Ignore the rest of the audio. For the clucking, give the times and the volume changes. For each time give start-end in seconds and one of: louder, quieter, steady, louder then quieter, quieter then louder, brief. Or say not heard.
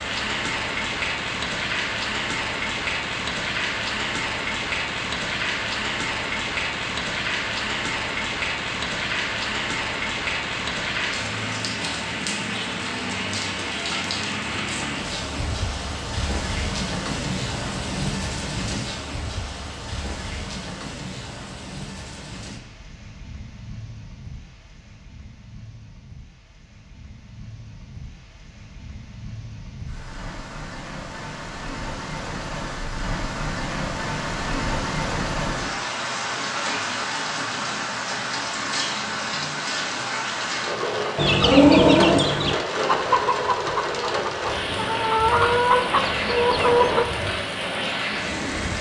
41.1-47.0 quieter then louder.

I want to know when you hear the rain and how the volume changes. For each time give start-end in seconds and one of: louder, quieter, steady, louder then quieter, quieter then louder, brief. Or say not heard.
0.0-48.7 quieter then louder.